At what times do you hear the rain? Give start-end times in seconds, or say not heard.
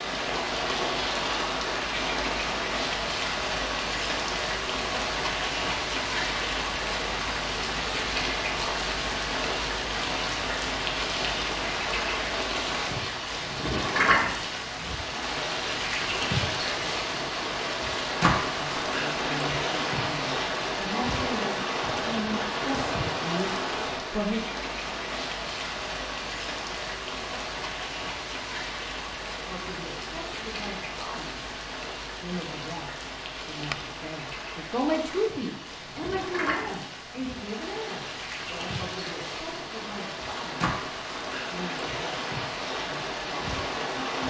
0.0-44.2.